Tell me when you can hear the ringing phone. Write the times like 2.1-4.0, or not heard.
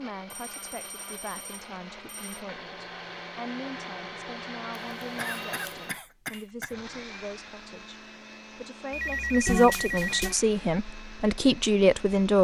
0.3-2.5, 4.8-6.0, 8.9-10.3.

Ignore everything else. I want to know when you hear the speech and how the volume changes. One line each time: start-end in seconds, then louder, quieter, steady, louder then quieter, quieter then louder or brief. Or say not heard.
0.0-12.3 louder.